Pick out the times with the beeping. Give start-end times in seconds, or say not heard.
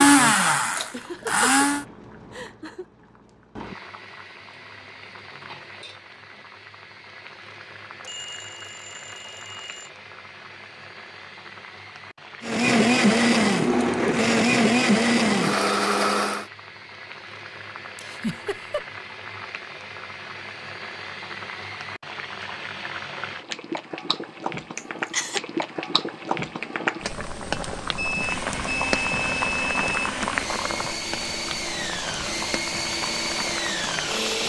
8.0-9.9, 27.9-30.1.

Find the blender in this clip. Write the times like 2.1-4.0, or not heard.
0.0-1.9, 12.4-16.4, 28.1-34.4.